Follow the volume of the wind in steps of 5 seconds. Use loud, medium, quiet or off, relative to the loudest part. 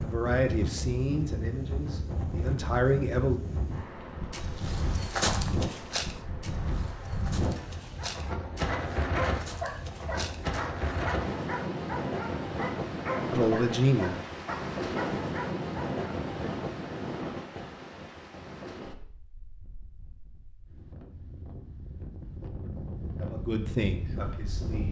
loud, loud, loud, loud, medium.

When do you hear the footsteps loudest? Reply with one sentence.
The volume of the footsteps peaks at 5 seconds.